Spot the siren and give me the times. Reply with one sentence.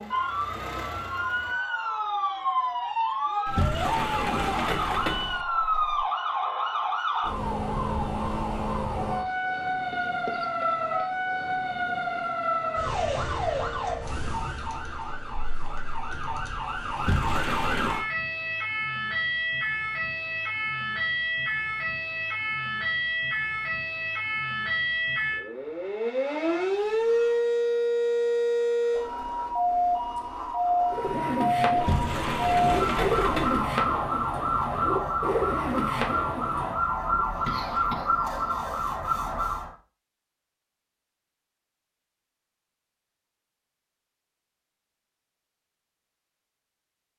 You can hear the siren from 0.0 to 39.8 s.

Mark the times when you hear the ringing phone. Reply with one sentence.
The ringing phone can't be heard in this clip.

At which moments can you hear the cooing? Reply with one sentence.
The cooing can be heard from 30.9 to 38.8 s.